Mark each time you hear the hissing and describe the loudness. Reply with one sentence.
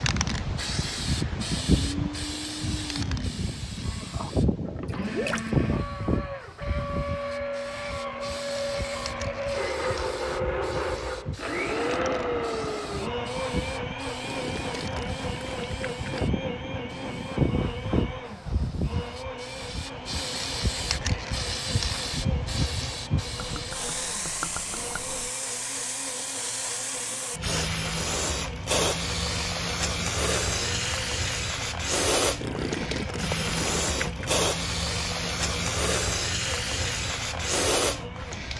The hissing can be heard from 0.0 to 38.5 s, getting quieter then louder.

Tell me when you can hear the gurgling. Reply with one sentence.
The gurgling can be heard from 4.8 to 5.5 s, from 14.2 to 16.3 s, from 23.4 to 25.2 s and from 32.4 to 34.4 s.